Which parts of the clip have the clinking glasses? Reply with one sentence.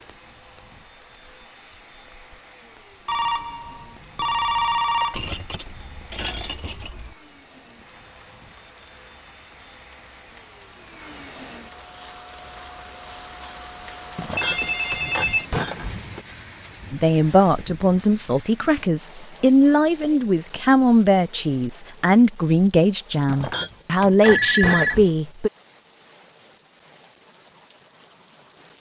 The clinking glasses can be heard from 5.1 to 7.2 s, from 14.2 to 16.1 s and from 23.2 to 25.1 s.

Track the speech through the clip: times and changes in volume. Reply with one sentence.
The speech can be heard from 16.9 to 25.5 s, at a steady volume.